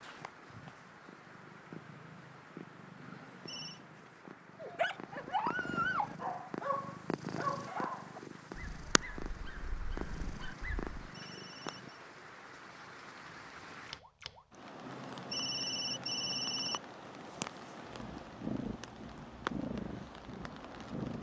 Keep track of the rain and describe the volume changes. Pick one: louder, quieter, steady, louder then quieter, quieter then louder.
louder.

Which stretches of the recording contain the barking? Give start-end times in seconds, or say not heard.
4.6-10.9.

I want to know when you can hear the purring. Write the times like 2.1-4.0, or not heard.
0.0-11.9, 17.1-21.1.